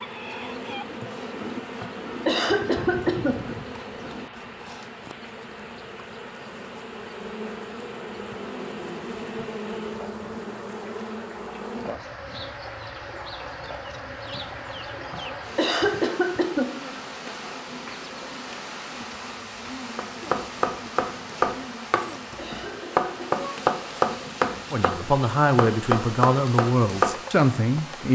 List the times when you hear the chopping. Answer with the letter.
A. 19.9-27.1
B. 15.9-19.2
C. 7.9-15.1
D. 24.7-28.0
A.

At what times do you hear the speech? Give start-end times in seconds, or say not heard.
24.7-28.0.